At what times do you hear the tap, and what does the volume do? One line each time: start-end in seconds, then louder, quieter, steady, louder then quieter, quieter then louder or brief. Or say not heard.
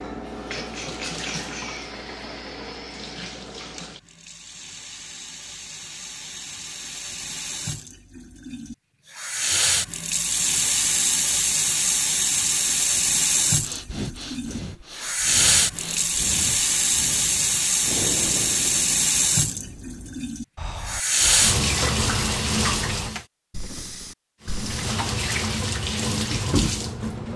0.0-23.2 louder
24.4-27.3 brief.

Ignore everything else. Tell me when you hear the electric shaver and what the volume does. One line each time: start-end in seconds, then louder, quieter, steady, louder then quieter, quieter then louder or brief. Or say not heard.
not heard.